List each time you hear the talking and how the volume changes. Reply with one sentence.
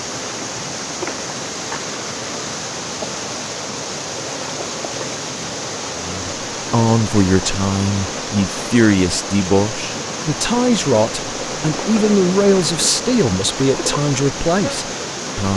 The talking can be heard from 6.0 to 15.5 s, at a steady volume.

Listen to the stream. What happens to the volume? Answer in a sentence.
The loudness of the stream stays about the same.